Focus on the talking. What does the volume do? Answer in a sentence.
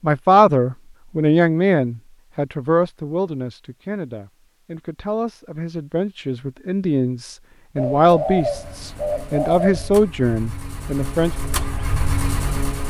The loudness of the talking goes down, then up.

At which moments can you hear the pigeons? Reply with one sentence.
The pigeons can be heard from 7.8 to 9.9 s.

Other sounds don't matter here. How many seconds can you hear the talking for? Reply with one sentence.
The talking can be heard for 11 seconds in total.